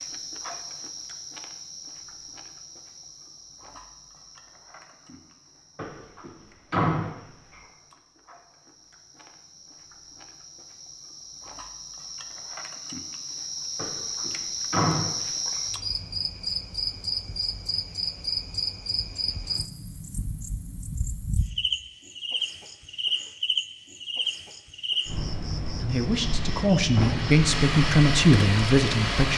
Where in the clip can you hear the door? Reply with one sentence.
You can hear the door from 5.8 to 7.6 s, from 13.8 to 15.6 s and from 26.9 to 27.4 s.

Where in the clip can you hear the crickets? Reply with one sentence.
You can hear the crickets from 0.0 to 29.3 s.